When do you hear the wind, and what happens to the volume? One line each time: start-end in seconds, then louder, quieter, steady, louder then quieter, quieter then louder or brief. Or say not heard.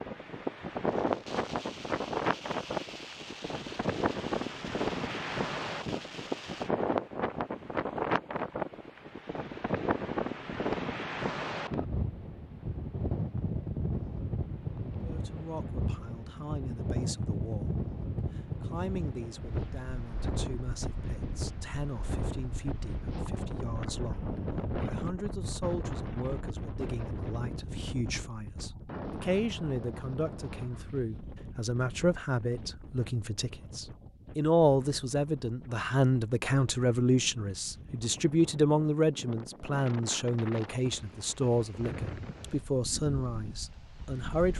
0.0-44.5 quieter.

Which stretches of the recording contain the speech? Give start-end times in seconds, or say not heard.
15.0-17.8, 18.6-44.5.